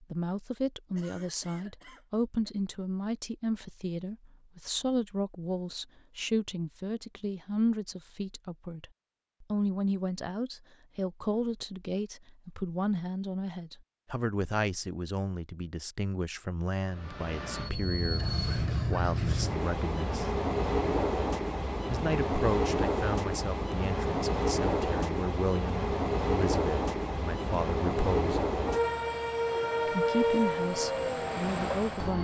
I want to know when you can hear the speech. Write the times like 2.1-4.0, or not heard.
0.0-20.3, 21.9-28.4, 29.9-32.1.